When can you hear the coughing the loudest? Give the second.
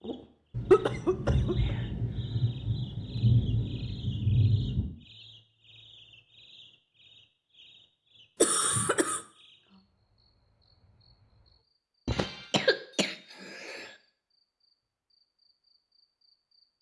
1 s.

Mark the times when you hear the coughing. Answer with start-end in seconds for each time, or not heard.
0.7-1.8, 8.4-9.2, 12.1-13.9.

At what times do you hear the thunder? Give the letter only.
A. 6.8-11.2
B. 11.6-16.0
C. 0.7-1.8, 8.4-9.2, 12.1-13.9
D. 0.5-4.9
D.